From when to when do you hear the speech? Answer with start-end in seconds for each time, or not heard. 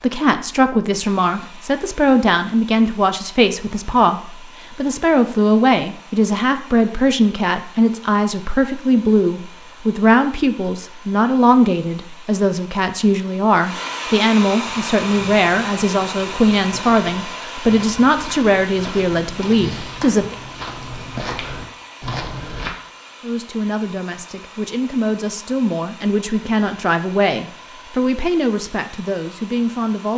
0.0-20.4, 23.2-30.1.